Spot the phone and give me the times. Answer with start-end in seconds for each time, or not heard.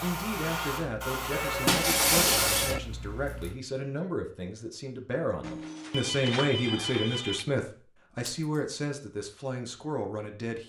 1.3-2.8, 5.4-7.5.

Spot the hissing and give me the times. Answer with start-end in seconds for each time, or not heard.
0.0-3.5.